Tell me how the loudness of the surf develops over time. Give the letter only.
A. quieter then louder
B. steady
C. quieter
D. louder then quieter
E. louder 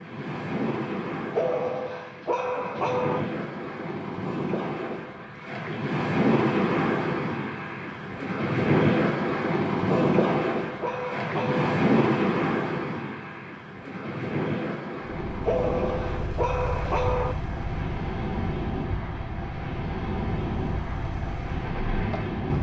D.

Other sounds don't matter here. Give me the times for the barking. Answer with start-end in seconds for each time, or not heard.
1.4-3.2, 9.8-11.8, 15.4-17.4.